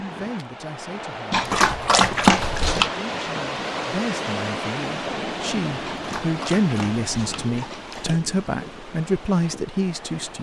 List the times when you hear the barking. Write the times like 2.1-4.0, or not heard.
1.3-2.9, 5.8-8.3.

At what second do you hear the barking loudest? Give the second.
2 s.